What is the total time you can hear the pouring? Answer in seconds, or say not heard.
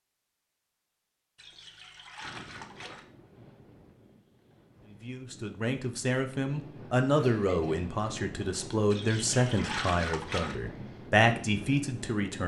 3 s.